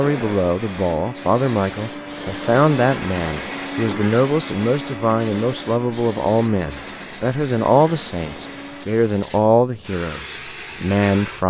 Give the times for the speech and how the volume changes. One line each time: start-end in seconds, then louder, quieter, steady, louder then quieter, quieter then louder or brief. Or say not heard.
0.0-11.4 steady.